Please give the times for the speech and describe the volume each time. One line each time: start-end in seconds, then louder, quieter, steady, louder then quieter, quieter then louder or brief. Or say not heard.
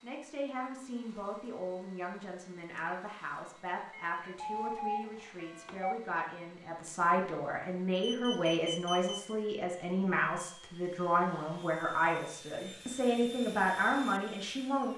0.0-14.9 louder.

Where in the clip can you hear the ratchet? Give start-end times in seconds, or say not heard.
not heard.